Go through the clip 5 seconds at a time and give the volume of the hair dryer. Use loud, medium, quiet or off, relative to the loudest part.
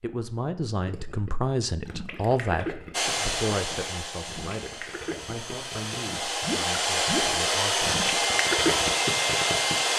medium, loud.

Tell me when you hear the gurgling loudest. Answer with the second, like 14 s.
9 s.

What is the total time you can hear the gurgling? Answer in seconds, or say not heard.
9 s.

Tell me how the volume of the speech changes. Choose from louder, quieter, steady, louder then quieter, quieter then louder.
quieter.